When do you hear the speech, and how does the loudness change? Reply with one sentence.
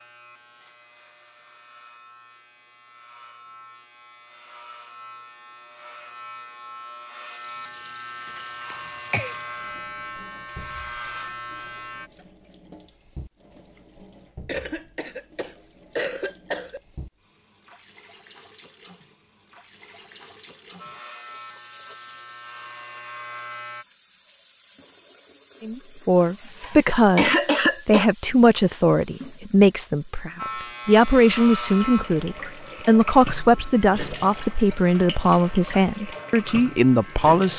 The speech can be heard from 25.6 to 37.5 s, at a steady volume.